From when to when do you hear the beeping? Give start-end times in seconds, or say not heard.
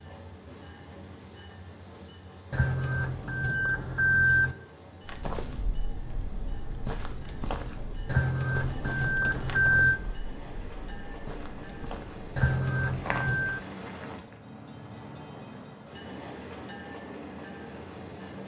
2.5-4.5, 8.1-10.0, 12.3-13.6.